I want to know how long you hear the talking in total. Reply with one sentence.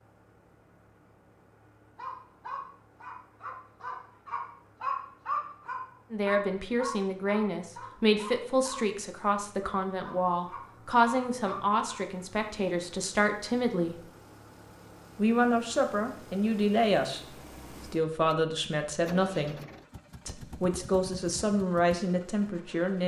The talking can be heard for 15 seconds in total.